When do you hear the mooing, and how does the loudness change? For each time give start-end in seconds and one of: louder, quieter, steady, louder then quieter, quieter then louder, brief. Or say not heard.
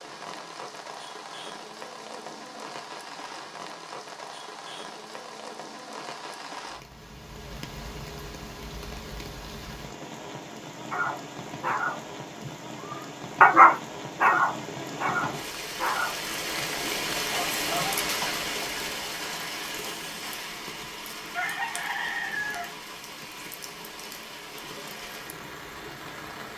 not heard.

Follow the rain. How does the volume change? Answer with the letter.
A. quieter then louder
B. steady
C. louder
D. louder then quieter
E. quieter
D.